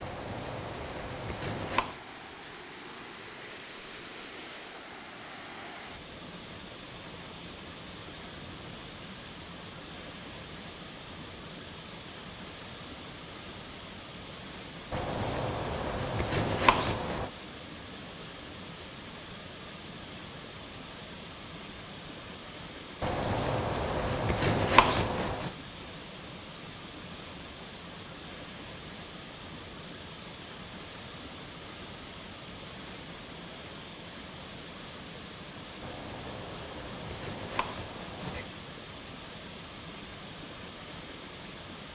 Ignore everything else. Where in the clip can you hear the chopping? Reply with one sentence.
The chopping can be heard from 0.0 to 2.0 s, from 14.9 to 17.3 s, from 23.0 to 25.6 s and from 35.8 to 38.5 s.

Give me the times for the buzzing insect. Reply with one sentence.
You can't hear the buzzing insect here.